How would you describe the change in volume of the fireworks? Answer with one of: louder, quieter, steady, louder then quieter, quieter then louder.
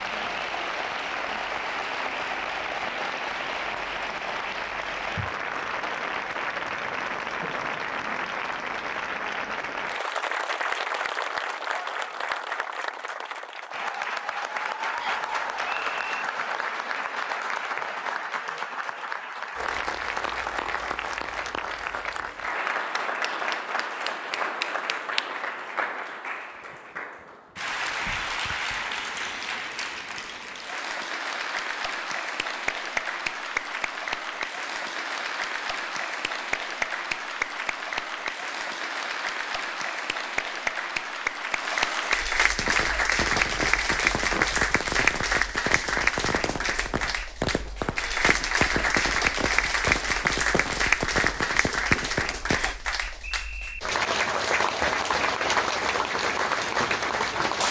steady.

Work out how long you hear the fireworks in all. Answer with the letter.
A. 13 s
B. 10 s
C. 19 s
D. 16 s
B.